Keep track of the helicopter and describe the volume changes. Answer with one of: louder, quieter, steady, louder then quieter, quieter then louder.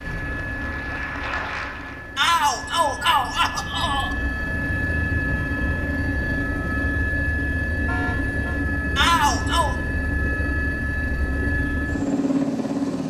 louder.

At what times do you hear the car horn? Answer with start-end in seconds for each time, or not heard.
7.8-8.6.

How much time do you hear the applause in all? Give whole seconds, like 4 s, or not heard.
2 s.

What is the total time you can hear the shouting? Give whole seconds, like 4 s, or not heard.
3 s.